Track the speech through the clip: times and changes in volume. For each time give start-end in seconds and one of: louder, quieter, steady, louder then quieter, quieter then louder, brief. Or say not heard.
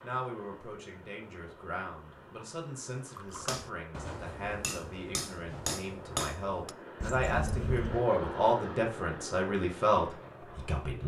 0.0-11.0 louder.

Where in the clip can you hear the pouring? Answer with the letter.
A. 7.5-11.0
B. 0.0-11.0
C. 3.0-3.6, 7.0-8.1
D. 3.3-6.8
C.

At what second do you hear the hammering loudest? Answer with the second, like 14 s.
6 s.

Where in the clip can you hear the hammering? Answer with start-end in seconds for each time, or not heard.
3.3-6.8.